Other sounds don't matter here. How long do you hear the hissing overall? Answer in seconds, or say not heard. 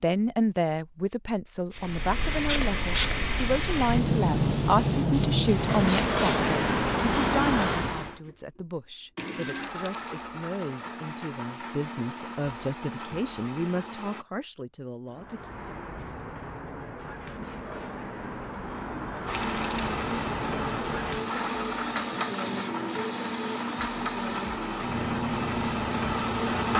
18 s.